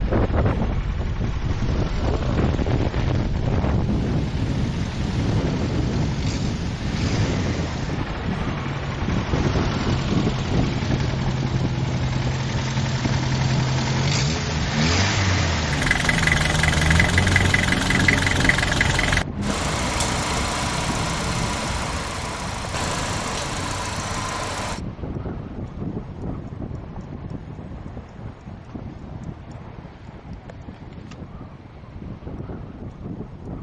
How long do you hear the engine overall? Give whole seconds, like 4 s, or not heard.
25 s.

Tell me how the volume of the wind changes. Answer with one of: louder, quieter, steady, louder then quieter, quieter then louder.
quieter.